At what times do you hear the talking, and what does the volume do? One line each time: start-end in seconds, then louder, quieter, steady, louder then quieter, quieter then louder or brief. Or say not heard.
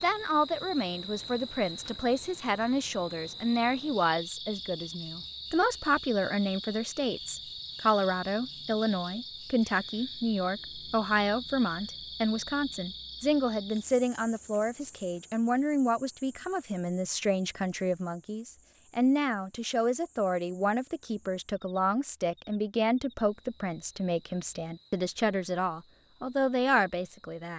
0.0-27.5 steady.